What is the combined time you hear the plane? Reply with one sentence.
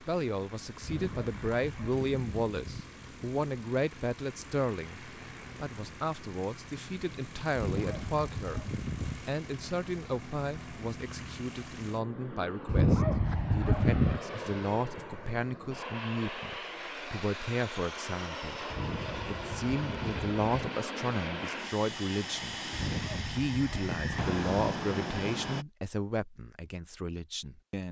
The plane can be heard for 26 seconds in total.